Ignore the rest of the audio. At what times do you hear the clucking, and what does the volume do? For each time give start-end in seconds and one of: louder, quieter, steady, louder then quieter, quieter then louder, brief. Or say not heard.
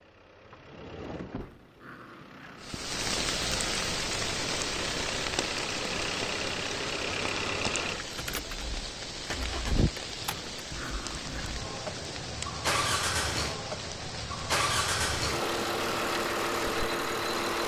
not heard.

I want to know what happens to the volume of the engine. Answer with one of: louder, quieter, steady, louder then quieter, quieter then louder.
louder.